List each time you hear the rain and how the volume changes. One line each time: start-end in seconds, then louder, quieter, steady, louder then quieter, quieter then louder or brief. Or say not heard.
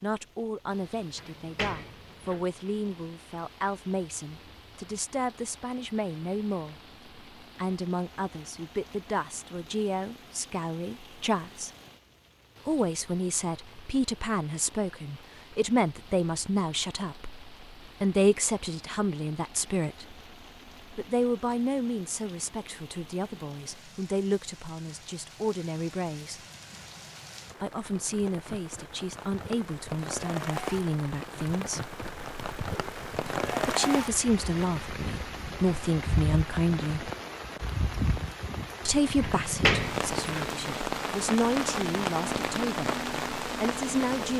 0.0-44.3 louder.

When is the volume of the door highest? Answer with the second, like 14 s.
40 s.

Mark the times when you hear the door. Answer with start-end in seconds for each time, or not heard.
1.1-2.5, 39.2-40.5.